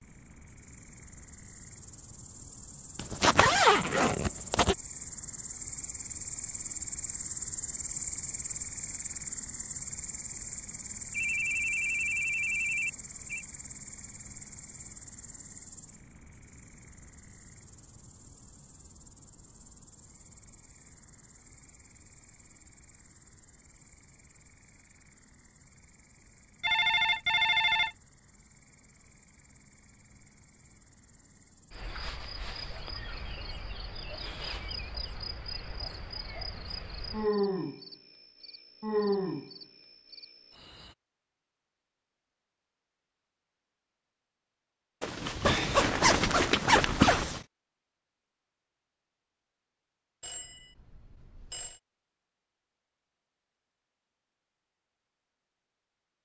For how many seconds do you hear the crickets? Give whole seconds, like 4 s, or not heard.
41 s.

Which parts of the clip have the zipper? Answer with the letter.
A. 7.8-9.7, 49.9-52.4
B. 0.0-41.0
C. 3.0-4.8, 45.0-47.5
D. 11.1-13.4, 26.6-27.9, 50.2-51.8
C.